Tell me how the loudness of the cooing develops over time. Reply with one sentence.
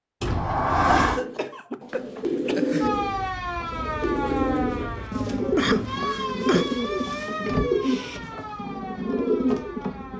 The volume of the cooing stays about the same.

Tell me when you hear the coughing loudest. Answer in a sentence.
The loudest moment of the coughing is at 6 seconds.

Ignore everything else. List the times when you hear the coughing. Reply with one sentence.
You can hear the coughing from 0.9 to 2.9 s and from 5.5 to 6.7 s.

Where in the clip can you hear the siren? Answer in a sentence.
You can hear the siren from 2.8 to 10.1 s.